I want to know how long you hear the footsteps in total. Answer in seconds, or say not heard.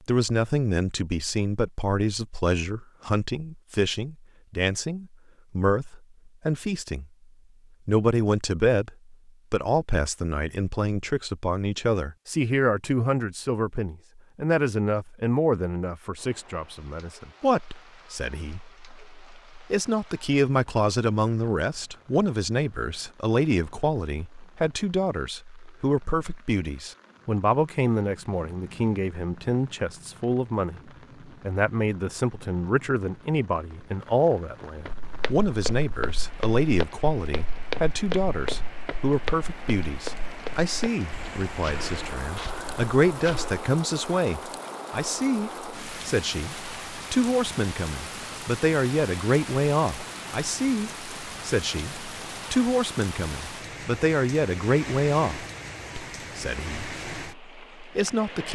9 s.